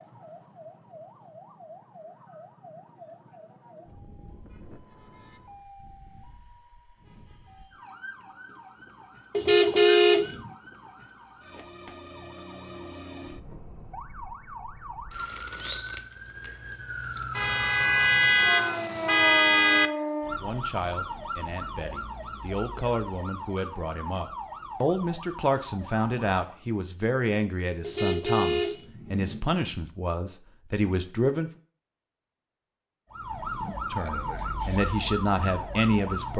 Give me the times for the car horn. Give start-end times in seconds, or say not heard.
9.3-10.5, 17.4-19.9, 27.8-29.4.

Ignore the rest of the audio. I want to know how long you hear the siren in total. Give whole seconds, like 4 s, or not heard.
30 s.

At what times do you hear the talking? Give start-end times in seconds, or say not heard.
20.4-31.5, 33.9-36.3.